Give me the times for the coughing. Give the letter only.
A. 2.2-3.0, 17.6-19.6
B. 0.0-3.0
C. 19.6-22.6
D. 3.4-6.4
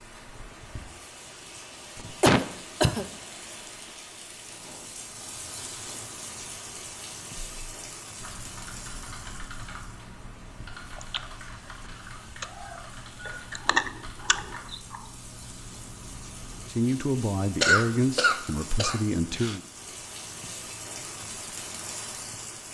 A.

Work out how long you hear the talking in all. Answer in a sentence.
The talking can be heard for 3 seconds in total.